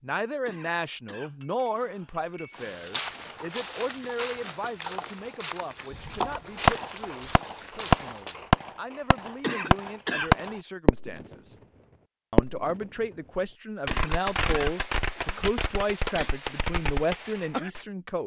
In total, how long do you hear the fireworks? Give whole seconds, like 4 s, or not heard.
10 s.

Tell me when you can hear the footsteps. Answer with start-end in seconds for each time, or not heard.
2.5-8.3.